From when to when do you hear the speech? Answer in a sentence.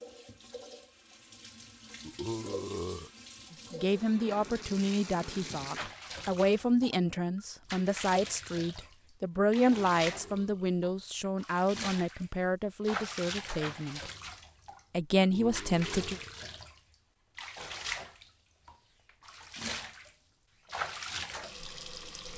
You can hear the speech from 3.5 to 14.1 s and from 14.9 to 16.2 s.